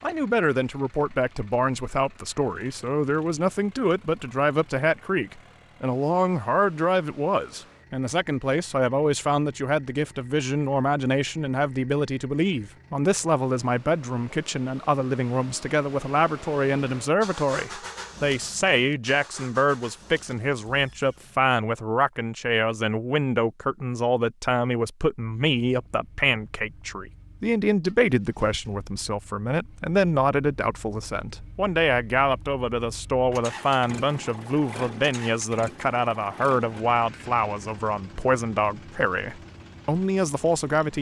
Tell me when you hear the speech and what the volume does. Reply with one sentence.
The speech can be heard from 0.0 to 40.9 s, at a steady volume.